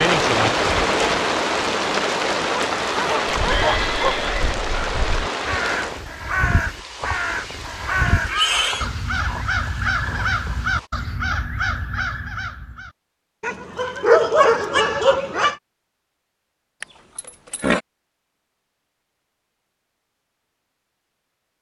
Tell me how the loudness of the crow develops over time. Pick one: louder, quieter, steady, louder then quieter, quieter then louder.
louder.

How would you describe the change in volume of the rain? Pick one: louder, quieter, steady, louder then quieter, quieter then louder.
quieter.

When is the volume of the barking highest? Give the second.
14 s.